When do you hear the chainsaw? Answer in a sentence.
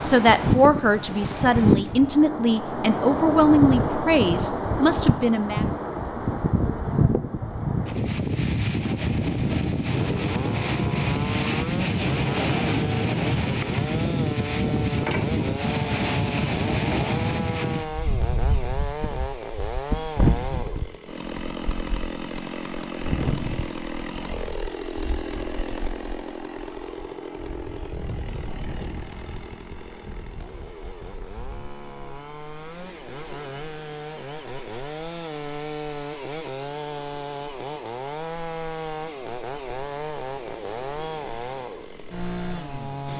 You can hear the chainsaw from 9.9 to 43.1 s.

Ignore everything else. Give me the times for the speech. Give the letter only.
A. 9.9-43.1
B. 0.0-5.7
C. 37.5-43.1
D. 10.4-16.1
B.